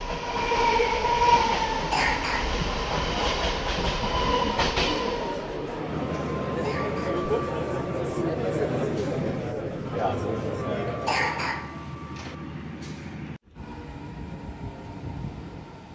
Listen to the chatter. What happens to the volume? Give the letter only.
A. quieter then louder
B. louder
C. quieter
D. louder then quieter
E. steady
B.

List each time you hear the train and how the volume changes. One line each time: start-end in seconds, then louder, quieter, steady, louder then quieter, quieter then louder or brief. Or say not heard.
0.0-15.9 quieter.